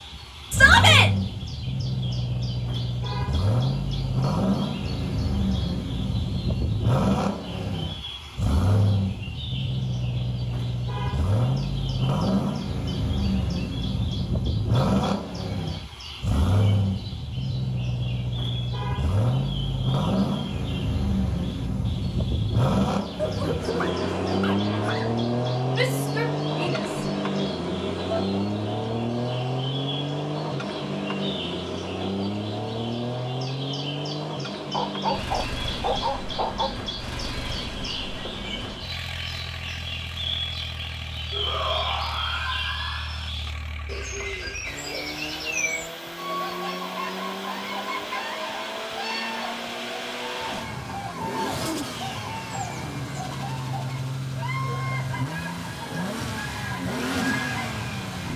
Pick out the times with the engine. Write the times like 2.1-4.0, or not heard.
0.0-58.3.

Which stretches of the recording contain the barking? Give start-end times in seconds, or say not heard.
23.1-25.1, 34.7-36.7.